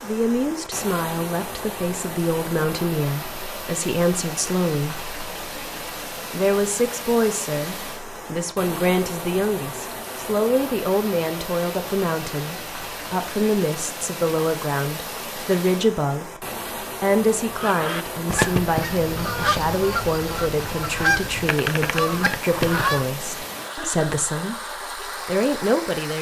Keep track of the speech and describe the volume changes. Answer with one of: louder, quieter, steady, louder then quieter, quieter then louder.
steady.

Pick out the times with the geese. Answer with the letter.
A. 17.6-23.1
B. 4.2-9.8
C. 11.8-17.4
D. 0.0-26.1
A.